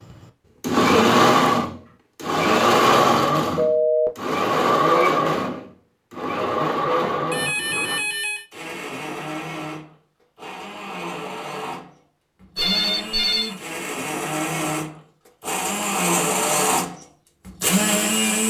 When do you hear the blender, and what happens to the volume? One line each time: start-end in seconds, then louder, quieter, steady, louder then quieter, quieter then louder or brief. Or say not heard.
0.1-18.4 quieter then louder.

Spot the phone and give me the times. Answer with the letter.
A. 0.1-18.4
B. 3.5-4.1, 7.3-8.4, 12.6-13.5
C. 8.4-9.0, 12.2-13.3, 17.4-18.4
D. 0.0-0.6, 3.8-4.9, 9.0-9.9
B.